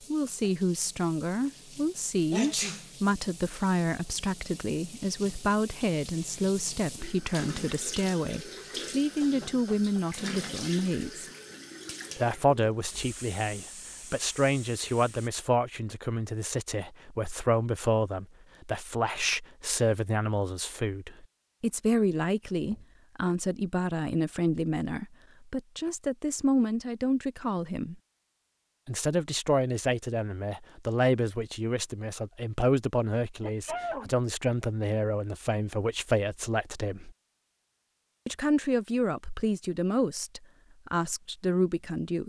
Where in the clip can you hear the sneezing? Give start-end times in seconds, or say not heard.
2.3-2.9, 33.4-34.1.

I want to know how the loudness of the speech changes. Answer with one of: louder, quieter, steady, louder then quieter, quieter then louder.
steady.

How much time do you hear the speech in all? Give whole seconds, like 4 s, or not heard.
39 s.